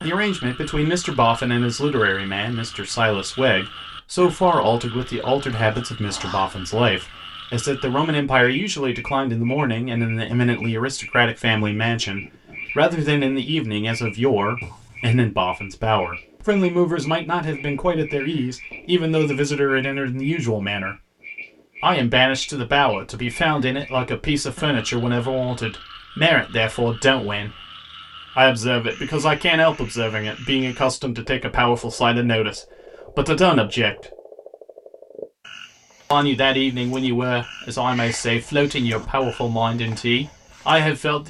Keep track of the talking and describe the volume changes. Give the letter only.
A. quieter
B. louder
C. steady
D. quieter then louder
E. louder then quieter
C.